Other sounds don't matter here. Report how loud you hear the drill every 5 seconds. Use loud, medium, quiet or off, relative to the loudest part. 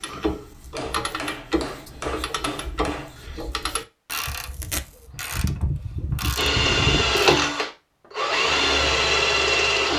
off, loud.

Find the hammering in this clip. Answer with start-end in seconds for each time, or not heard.
0.8-3.1.